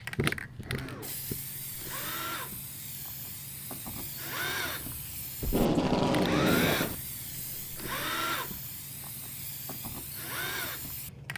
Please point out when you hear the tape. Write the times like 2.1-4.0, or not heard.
5.4-7.0.